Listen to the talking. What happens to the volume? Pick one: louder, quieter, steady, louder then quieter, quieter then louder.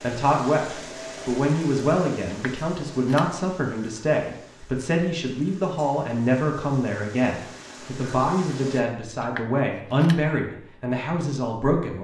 steady.